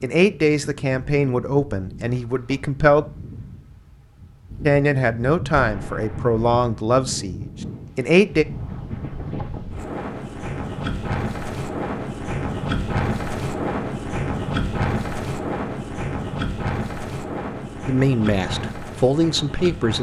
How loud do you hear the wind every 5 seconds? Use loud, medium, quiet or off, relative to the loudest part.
quiet, medium, loud, loud.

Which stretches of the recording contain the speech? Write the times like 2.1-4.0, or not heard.
0.0-3.0, 4.6-8.4, 17.9-19.9.